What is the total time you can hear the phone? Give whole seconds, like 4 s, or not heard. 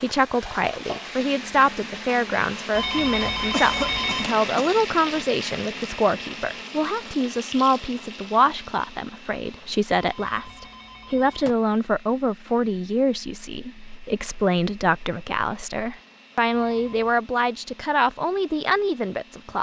4 s.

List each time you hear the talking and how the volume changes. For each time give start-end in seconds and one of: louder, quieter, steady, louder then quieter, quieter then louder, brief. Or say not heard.
0.0-19.5 steady.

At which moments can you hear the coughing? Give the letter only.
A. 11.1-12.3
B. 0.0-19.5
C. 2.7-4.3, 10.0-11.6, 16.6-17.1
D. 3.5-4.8
D.